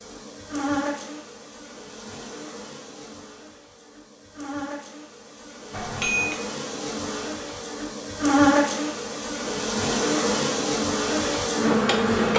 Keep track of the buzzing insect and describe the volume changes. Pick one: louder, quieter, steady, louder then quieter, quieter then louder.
quieter then louder.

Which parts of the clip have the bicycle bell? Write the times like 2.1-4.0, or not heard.
5.7-6.4.